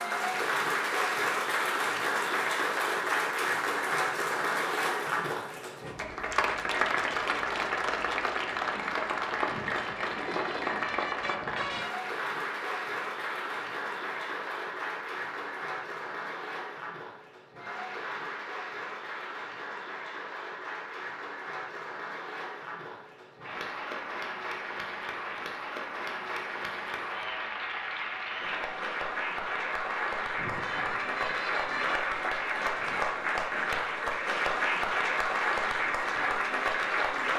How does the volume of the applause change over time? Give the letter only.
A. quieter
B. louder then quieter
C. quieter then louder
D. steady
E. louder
C.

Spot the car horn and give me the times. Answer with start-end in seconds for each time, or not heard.
9.4-11.9, 30.4-32.0.